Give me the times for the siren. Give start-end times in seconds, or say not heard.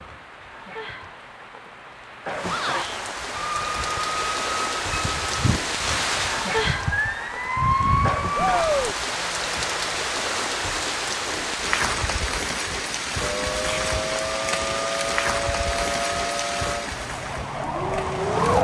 3.4-8.7, 13.2-18.6.